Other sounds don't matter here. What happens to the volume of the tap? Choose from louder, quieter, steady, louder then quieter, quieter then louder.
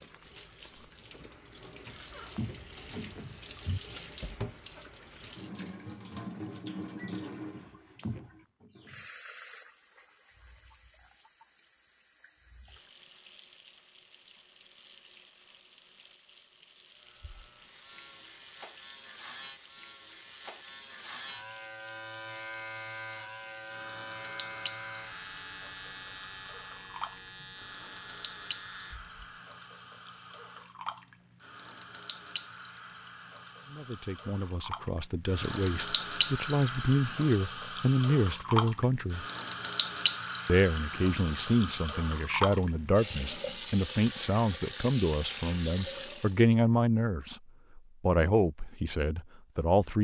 quieter then louder.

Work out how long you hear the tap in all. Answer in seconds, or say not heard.
46 s.